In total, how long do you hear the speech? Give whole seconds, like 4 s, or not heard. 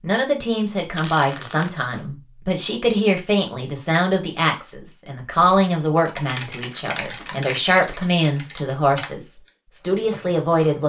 11 s.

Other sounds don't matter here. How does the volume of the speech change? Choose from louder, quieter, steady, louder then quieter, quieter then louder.
steady.